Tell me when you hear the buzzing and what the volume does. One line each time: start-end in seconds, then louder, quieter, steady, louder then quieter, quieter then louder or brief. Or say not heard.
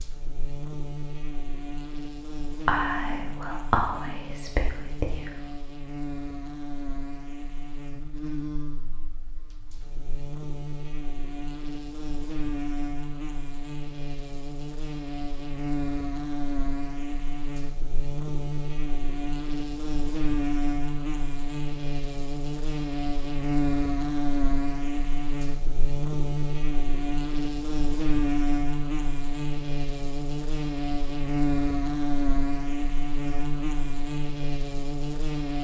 0.0-35.5 louder.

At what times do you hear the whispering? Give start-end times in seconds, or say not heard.
2.6-5.5.